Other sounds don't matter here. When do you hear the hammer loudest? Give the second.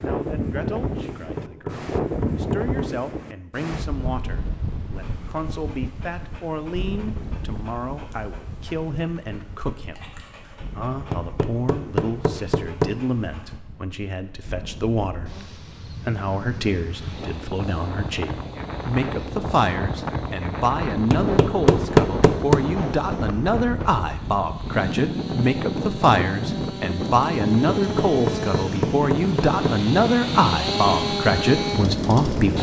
22 s.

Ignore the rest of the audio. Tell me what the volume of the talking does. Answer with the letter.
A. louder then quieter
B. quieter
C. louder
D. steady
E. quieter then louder
C.